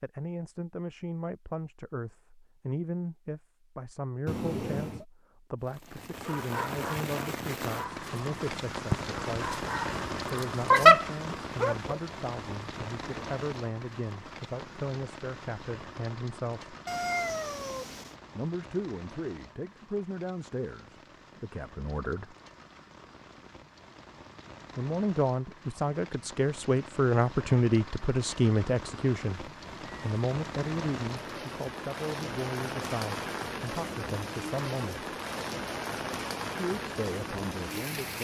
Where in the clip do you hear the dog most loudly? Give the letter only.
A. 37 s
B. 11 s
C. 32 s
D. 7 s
B.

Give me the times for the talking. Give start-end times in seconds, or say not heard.
0.0-16.8, 18.4-22.4, 24.8-35.0, 36.5-38.1.